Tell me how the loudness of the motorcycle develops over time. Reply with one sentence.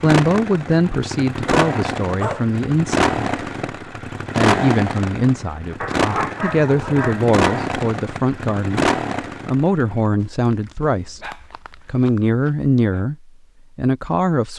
The volume of the motorcycle stays about the same.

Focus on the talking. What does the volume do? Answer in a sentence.
The volume of the talking stays about the same.